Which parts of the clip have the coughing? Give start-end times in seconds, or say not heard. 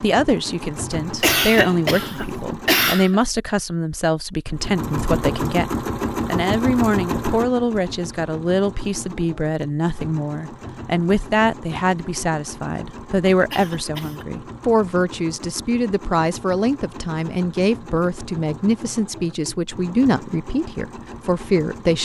1.1-3.2, 13.5-14.2.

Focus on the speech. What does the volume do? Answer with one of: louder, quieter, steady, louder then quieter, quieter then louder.
steady.